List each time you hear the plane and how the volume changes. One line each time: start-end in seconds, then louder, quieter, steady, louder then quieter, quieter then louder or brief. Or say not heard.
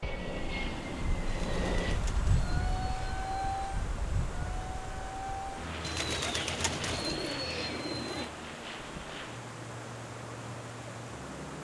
0.0-11.5 quieter.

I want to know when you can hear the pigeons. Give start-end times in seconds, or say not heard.
1.2-3.6, 5.8-8.3.